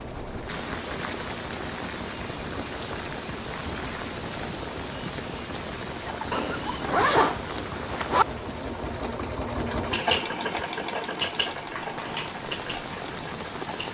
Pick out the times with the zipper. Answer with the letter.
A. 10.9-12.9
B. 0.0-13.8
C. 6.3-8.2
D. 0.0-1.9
C.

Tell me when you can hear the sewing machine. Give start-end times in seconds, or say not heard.
0.0-13.8.